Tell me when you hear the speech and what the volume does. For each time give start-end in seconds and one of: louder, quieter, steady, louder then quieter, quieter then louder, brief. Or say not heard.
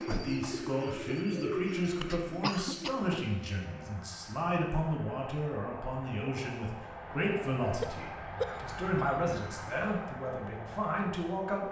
0.1-11.6 steady.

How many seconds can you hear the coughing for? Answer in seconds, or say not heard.
2 s.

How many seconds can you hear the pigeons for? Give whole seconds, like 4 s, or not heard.
3 s.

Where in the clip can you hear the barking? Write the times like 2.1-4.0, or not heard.
not heard.